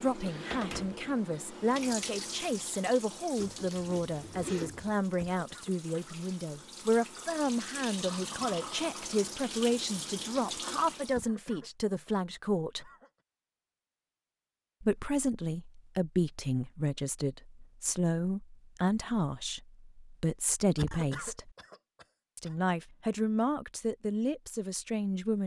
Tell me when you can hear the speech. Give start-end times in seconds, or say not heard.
0.0-12.8, 14.8-21.5, 22.4-25.4.